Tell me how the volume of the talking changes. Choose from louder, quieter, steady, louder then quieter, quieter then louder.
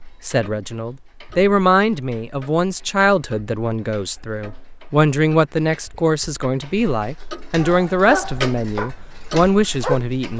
steady.